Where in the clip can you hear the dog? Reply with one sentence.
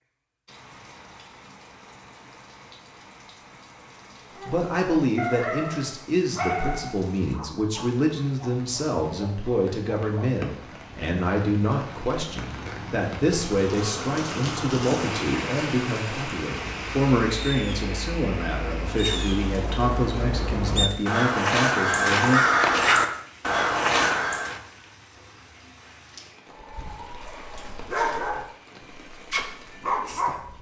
You can hear the dog from 4.3 to 10.8 s and from 26.5 to 30.5 s.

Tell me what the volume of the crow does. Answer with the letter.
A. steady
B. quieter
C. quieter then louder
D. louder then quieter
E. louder
E.